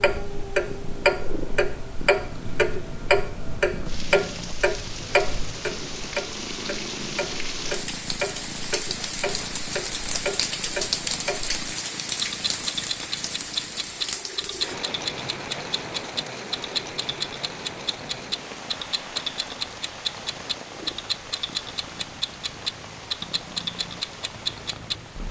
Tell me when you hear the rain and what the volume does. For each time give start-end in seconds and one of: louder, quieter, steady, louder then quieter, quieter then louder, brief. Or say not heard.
0.0-25.2 louder then quieter.